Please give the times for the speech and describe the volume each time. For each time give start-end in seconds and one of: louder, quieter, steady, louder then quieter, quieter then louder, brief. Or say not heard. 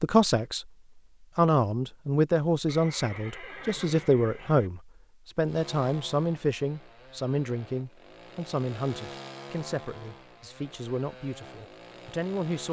0.0-0.7 brief
1.4-12.6 quieter.